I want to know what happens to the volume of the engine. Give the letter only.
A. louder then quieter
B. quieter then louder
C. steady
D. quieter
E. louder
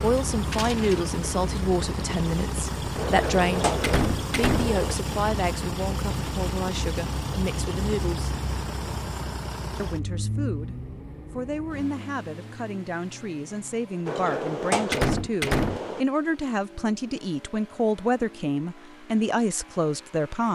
D.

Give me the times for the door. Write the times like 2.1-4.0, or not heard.
3.0-5.0, 14.1-16.1.